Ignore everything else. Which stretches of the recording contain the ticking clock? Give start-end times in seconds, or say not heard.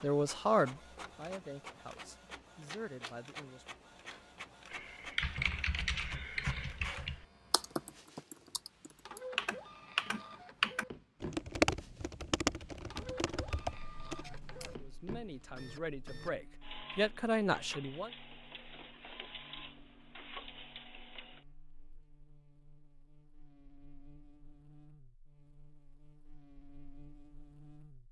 not heard.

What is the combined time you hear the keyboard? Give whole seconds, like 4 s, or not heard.
10 s.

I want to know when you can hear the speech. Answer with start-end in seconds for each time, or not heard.
0.0-3.8, 14.6-18.1.